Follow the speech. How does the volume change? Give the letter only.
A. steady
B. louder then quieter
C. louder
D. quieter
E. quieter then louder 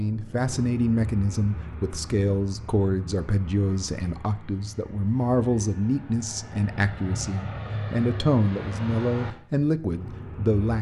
A.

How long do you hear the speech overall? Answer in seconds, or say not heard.
11 s.